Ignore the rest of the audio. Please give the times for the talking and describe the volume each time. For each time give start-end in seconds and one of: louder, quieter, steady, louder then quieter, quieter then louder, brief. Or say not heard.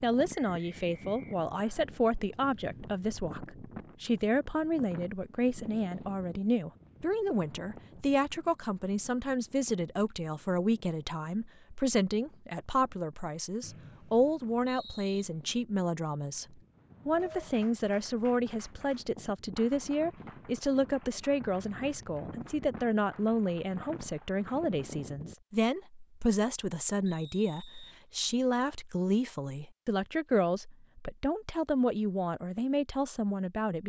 0.0-33.8 steady.